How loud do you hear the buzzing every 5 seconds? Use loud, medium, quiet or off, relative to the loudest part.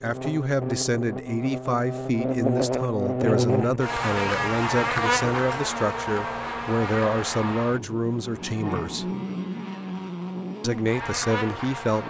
loud, loud, medium.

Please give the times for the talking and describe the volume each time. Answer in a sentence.
The talking can be heard from 0.0 to 9.1 s, at a steady volume; and briefly from 10.6 to 12.0 s.